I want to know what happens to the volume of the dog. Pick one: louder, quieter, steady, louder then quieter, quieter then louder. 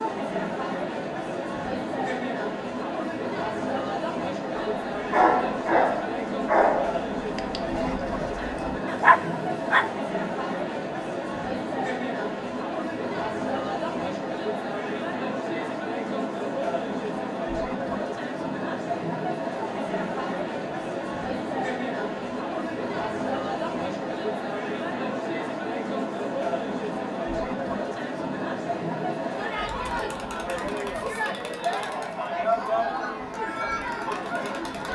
quieter then louder.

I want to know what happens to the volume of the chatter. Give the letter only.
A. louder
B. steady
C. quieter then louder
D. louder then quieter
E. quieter
B.